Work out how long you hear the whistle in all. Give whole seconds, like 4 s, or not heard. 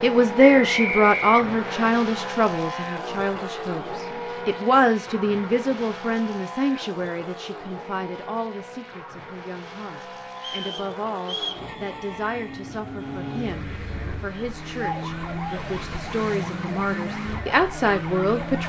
3 s.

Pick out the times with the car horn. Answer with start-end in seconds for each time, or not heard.
not heard.